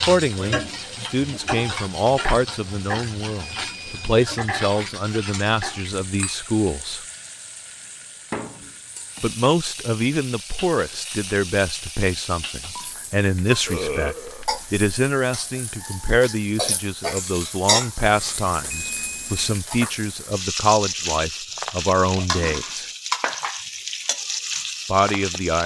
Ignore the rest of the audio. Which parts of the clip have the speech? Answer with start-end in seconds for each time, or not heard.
0.0-7.0, 9.2-22.9, 24.9-25.6.